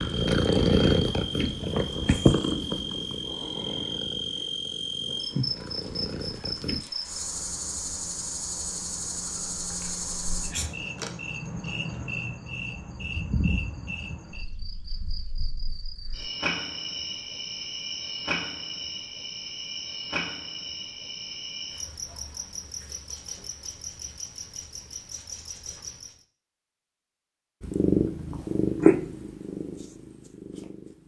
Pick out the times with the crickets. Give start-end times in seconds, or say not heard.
0.0-26.2.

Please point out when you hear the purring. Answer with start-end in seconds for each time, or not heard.
0.0-6.8, 27.6-31.0.